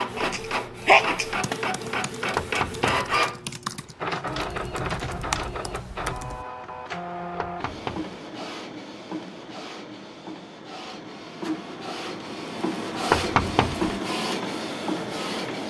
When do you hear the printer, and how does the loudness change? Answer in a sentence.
The printer can be heard from 0.0 to 15.6 s, getting quieter then louder.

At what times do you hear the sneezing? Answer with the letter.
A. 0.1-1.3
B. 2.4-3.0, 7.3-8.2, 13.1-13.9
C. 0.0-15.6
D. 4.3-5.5
A.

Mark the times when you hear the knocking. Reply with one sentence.
You can hear the knocking from 2.4 to 3.0 s, from 7.3 to 8.2 s and from 13.1 to 13.9 s.